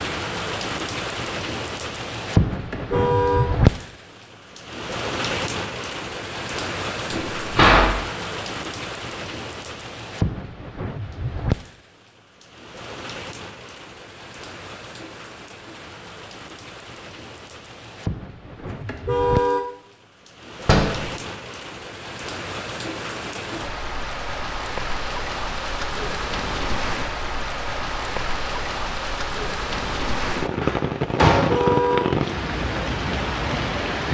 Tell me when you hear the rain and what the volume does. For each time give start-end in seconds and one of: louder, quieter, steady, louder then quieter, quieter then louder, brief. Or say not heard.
0.0-34.0 quieter then louder.